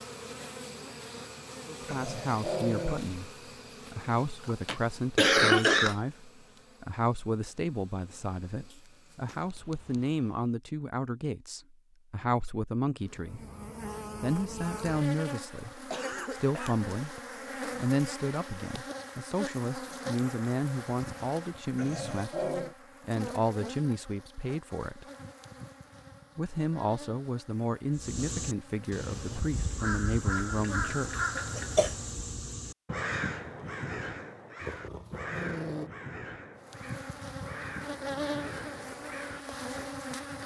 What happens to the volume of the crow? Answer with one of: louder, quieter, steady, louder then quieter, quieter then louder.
quieter.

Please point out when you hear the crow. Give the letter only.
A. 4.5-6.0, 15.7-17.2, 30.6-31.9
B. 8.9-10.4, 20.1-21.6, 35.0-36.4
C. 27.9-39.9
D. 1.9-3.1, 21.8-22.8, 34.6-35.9
C.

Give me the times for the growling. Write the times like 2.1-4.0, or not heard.
1.9-3.1, 21.8-22.8, 34.6-35.9.